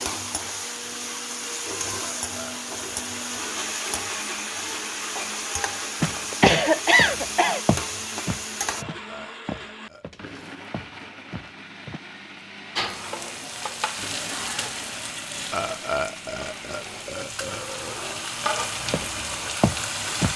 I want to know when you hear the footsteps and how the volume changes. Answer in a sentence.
You can hear the footsteps from 6.0 to 12.0 s, getting quieter; and briefly from 18.4 to 20.3 s.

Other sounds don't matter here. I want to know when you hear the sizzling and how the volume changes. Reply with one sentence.
You can hear the sizzling from 0.0 to 8.8 s, at a steady volume; and from 12.8 to 20.3 s, getting quieter then louder.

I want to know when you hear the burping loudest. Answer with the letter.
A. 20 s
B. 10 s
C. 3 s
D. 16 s
D.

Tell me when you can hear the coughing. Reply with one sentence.
You can hear the coughing from 6.3 to 7.6 s.